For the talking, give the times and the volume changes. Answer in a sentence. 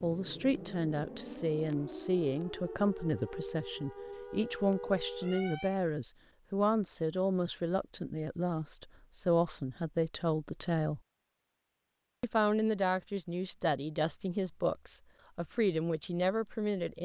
The talking can be heard from 0.0 to 11.0 s, at a steady volume; and from 12.2 to 17.0 s, at a steady volume.